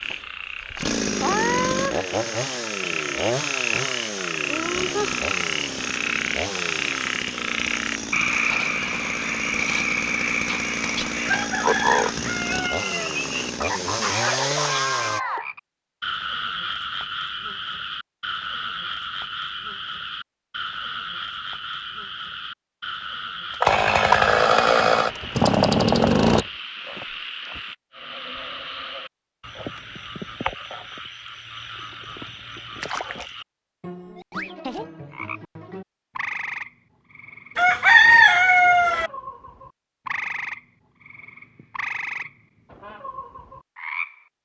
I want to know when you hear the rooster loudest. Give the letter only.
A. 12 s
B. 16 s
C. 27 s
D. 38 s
D.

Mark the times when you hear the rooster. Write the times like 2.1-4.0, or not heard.
11.2-13.1, 37.5-39.1.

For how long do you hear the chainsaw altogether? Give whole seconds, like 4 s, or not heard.
18 s.